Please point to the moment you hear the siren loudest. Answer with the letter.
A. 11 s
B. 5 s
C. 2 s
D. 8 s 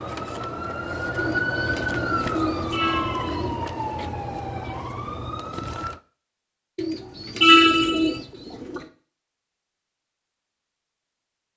C.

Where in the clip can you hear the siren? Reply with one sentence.
The siren can be heard from 0.0 to 6.0 s.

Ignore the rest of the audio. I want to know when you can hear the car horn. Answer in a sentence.
You can hear the car horn from 2.7 to 3.5 s and from 7.4 to 8.2 s.